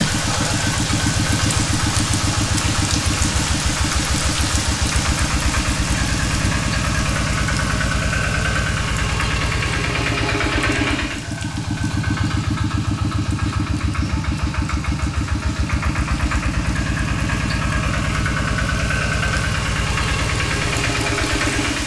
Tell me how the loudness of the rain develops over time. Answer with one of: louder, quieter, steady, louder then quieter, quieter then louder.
quieter then louder.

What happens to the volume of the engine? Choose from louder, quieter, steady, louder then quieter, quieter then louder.
steady.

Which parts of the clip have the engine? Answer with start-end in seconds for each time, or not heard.
0.0-21.8.